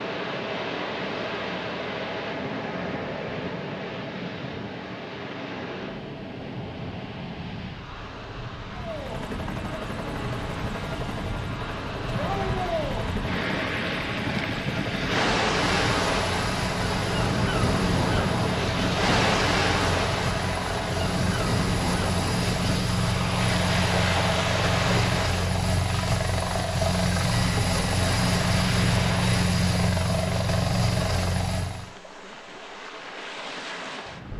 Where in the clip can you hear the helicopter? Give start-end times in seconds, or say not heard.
8.7-31.9.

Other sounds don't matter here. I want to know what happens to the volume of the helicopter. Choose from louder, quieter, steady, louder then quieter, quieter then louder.
louder.